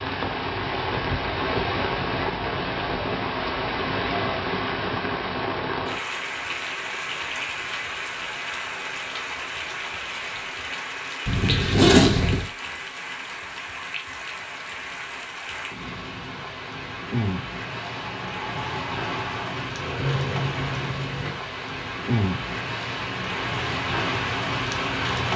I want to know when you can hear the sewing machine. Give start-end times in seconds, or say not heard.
17.9-21.4.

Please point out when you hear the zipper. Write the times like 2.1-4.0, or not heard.
11.2-12.5.